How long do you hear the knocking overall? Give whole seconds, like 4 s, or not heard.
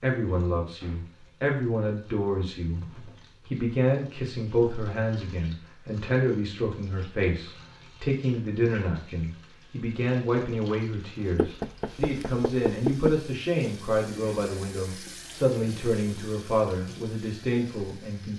2 s.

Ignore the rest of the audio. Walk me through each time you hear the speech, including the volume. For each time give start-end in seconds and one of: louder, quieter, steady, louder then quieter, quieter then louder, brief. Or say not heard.
0.0-18.3 steady.